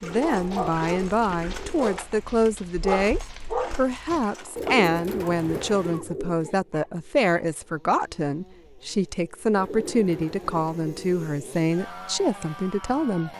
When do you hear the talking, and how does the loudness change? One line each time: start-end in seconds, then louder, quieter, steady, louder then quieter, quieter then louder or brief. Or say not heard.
0.0-13.3 steady.